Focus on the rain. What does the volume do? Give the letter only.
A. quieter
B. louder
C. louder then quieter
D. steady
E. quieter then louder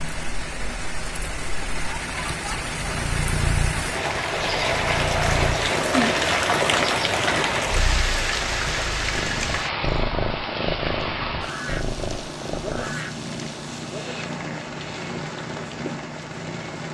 C.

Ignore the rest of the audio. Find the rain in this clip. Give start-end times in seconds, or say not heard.
0.0-16.9.